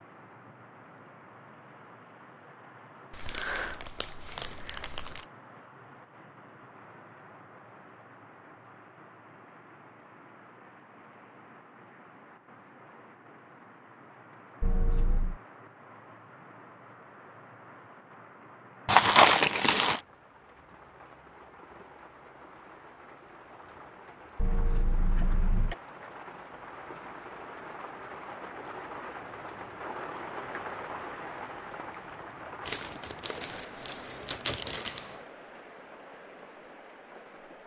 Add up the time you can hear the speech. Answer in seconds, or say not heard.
not heard.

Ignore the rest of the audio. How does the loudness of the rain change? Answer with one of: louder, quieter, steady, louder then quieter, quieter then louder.
louder.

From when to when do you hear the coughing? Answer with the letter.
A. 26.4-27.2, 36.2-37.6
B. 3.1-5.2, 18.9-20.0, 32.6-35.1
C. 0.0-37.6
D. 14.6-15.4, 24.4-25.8
D.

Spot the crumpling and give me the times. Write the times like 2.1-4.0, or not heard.
3.1-5.2, 18.9-20.0, 32.6-35.1.